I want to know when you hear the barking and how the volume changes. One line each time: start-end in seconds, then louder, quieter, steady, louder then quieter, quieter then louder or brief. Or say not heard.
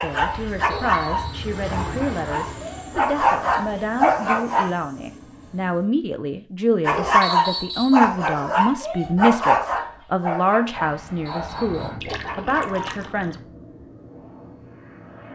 0.0-4.7 quieter then louder
6.8-12.8 quieter.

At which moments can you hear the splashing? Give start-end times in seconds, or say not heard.
12.0-13.4.